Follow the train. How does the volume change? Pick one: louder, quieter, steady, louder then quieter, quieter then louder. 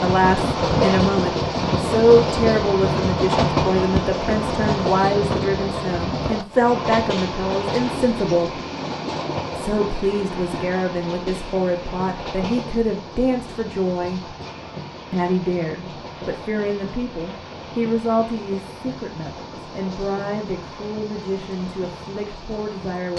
quieter.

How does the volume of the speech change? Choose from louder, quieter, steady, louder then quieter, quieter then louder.
quieter.